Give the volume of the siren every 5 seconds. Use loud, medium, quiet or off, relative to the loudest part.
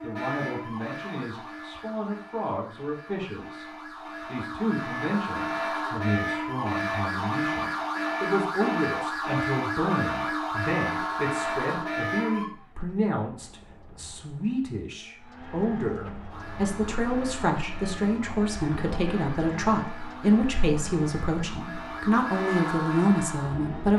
medium, loud, loud, quiet, medium.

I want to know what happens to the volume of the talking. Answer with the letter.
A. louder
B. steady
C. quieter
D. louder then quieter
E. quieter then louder
A.